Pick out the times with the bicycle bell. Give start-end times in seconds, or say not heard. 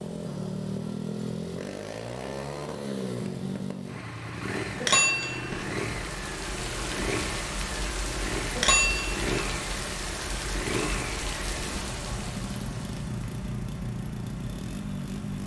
4.8-5.7, 8.6-9.3.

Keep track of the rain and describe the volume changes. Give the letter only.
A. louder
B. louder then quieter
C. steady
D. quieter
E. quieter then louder
D.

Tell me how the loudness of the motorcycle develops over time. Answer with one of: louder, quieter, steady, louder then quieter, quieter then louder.
steady.